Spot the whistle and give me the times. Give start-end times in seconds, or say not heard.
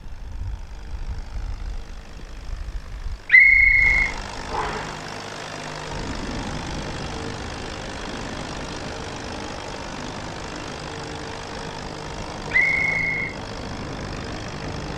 3.2-4.8, 12.5-13.3.